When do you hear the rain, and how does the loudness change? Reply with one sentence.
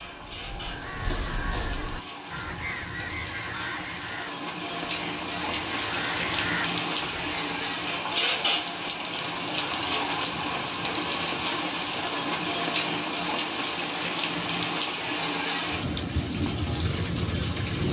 The rain can be heard from 0.0 to 17.8 s, getting louder.